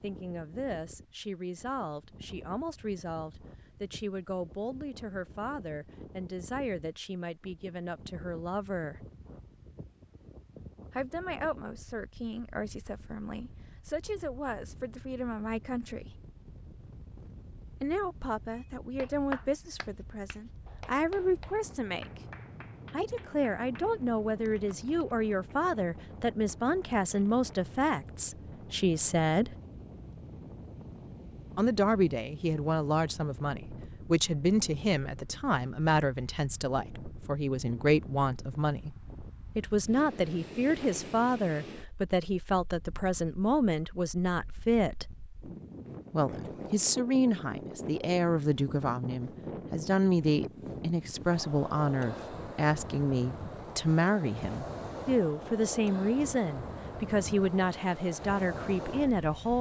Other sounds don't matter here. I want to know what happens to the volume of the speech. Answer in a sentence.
The volume of the speech goes up.